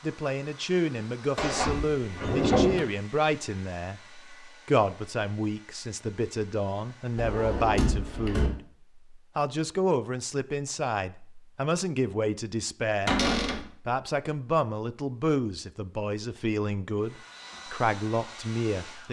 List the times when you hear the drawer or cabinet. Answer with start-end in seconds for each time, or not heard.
1.4-2.8, 7.2-8.5, 13.1-13.6.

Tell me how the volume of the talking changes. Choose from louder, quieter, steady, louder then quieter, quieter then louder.
steady.